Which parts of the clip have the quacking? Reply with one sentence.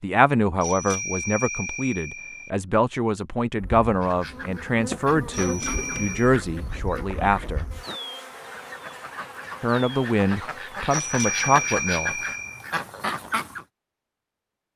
The quacking can be heard from 4.0 to 13.7 s.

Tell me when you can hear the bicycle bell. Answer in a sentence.
The bicycle bell can be heard from 0.6 to 2.5 s, from 5.3 to 6.3 s and from 10.9 to 12.7 s.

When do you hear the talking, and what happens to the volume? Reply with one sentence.
You can hear the talking from 0.0 to 7.7 s, at a steady volume; and briefly from 9.6 to 12.2 s.